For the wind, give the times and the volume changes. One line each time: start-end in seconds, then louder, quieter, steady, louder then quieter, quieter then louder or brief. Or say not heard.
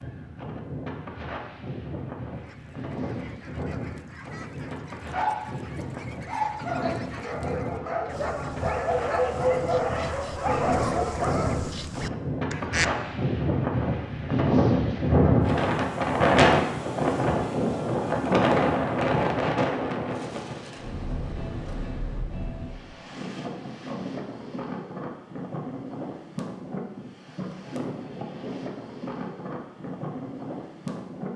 0.0-31.3 louder then quieter.